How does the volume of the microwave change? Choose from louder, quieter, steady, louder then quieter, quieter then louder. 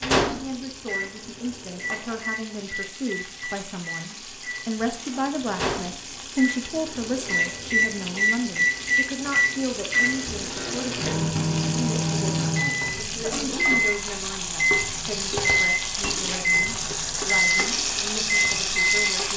louder.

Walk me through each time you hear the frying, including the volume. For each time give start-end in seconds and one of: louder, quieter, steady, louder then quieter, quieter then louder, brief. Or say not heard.
0.1-19.3 louder.